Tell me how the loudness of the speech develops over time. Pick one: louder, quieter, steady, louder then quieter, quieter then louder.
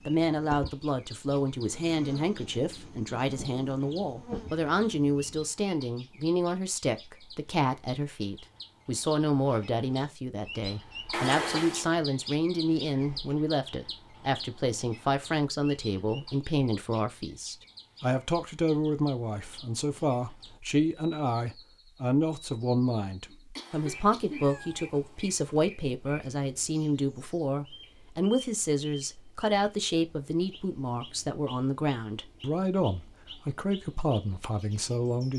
steady.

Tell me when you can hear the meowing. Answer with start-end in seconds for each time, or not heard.
11.1-11.9, 23.6-25.6.